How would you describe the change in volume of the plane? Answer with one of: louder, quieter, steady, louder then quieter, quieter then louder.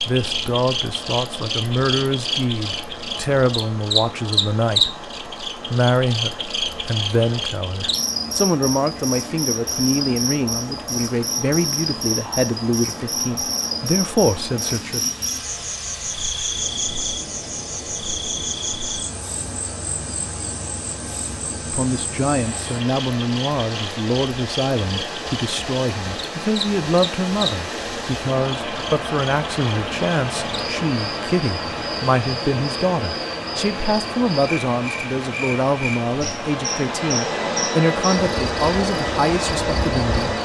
steady.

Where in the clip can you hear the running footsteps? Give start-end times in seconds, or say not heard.
not heard.